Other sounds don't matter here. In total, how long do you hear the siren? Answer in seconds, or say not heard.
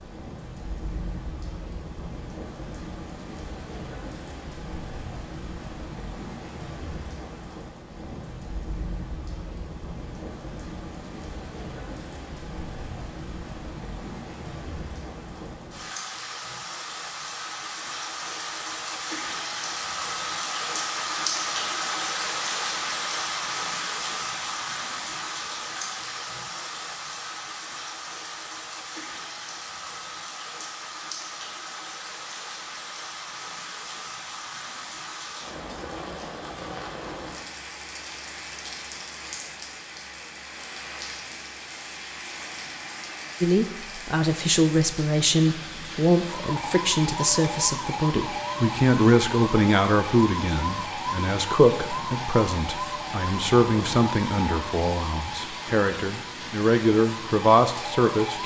12 s.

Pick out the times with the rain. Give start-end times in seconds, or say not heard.
0.0-58.4.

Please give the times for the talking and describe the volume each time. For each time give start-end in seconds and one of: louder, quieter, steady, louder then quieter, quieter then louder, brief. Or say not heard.
43.4-58.4 steady.